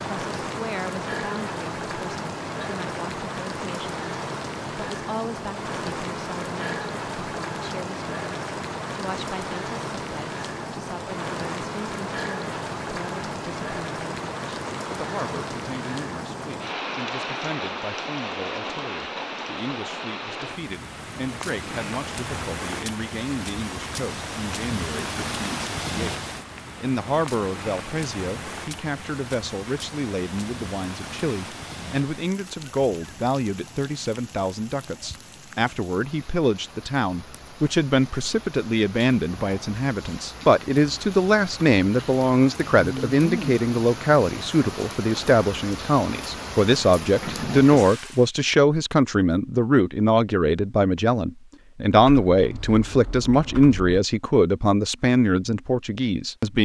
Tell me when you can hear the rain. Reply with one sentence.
The rain can be heard from 0.0 to 48.3 s.